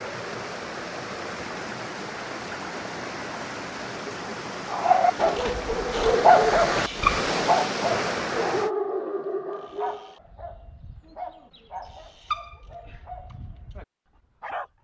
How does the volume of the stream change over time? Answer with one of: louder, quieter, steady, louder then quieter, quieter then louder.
louder.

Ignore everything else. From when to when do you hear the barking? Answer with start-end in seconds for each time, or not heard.
4.7-14.7.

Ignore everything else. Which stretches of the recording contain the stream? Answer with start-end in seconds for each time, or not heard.
0.0-8.7.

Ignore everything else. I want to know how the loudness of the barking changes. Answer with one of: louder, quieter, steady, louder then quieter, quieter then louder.
quieter.